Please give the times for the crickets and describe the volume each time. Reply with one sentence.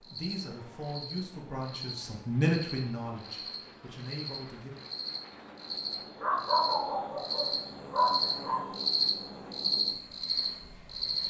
You can hear the crickets from 0.0 to 11.2 s, getting louder.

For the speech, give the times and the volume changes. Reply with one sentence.
The speech can be heard from 0.0 to 4.7 s, getting louder then quieter.